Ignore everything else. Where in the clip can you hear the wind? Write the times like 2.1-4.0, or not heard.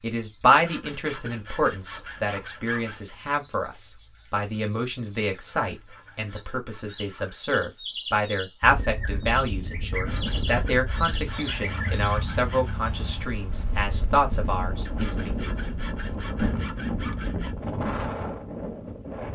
8.6-19.3.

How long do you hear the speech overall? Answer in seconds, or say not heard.
15 s.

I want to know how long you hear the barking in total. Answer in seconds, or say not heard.
not heard.